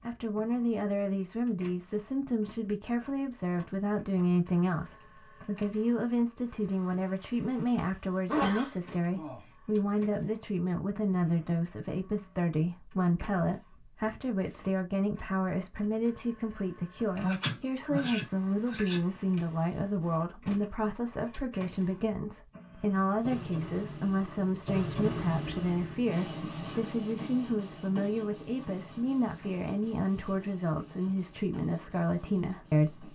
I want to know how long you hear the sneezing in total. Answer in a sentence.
You can hear the sneezing for 3 seconds altogether.